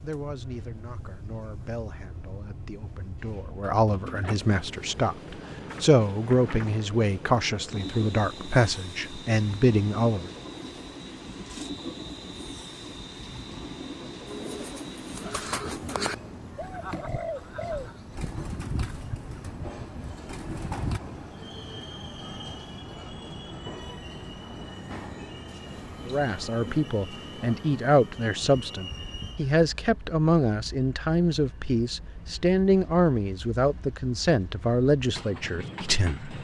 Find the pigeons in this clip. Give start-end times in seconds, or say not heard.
14.2-21.0.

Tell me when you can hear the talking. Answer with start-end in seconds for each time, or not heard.
0.0-10.3, 26.1-36.3.